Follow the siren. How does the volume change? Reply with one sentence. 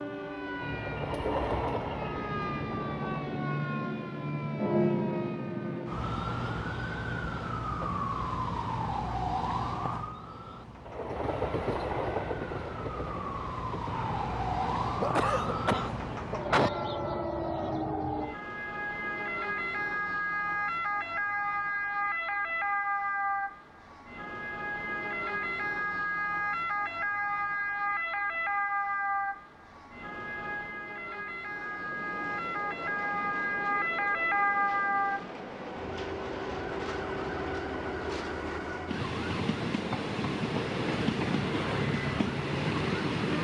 The volume of the siren stays about the same.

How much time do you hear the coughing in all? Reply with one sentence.
The coughing can be heard for 2 seconds in total.